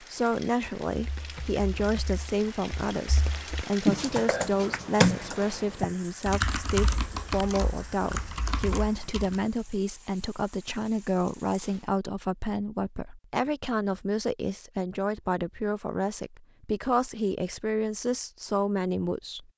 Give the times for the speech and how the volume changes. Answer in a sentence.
The speech can be heard from 0.0 to 19.5 s, at a steady volume.